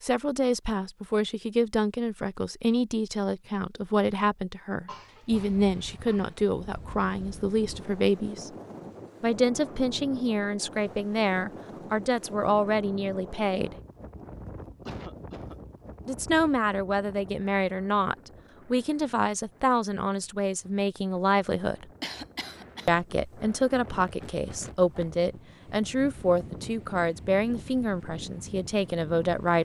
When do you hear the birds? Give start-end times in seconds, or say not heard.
not heard.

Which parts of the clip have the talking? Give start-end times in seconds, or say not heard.
0.0-8.5, 9.2-13.8, 16.1-21.9, 22.9-29.5.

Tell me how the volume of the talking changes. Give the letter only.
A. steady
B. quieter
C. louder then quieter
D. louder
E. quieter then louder
A.